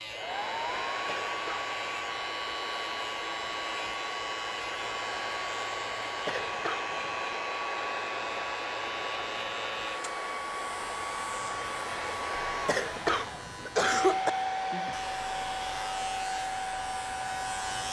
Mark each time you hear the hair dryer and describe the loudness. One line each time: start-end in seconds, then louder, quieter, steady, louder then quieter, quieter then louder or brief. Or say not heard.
0.0-17.8 steady.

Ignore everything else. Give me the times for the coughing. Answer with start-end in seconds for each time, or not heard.
1.1-1.6, 6.2-7.2, 12.7-14.3.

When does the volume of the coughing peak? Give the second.
14 s.